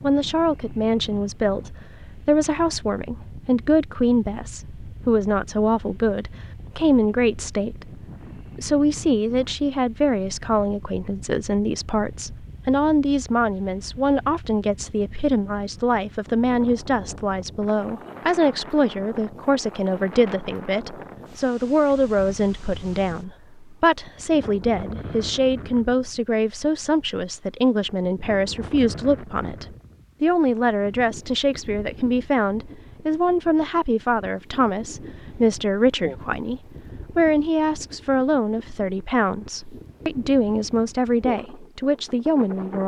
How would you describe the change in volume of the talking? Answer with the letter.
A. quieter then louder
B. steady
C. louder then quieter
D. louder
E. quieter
B.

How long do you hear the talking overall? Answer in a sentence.
The talking can be heard for 43 seconds in total.